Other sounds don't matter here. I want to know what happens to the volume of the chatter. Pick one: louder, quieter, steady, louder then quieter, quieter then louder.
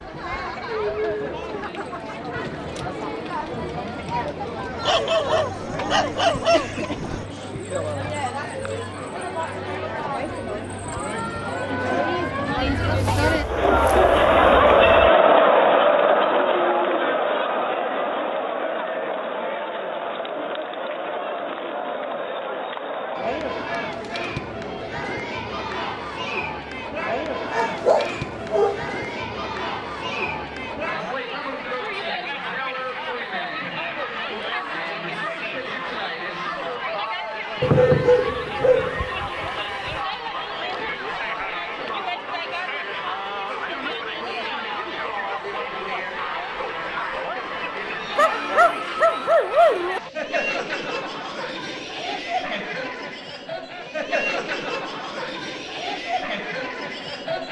louder then quieter.